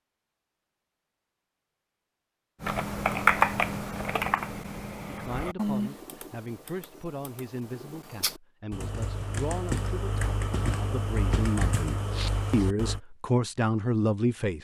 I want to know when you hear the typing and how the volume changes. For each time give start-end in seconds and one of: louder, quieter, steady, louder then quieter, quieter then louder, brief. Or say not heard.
2.6-13.0 quieter then louder.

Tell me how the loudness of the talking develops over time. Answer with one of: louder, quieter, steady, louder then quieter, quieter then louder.
louder.